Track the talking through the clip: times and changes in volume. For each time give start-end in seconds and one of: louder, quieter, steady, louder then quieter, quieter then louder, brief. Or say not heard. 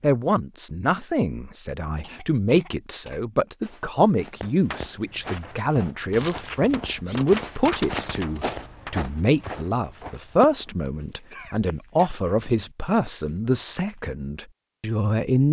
0.0-15.4 steady.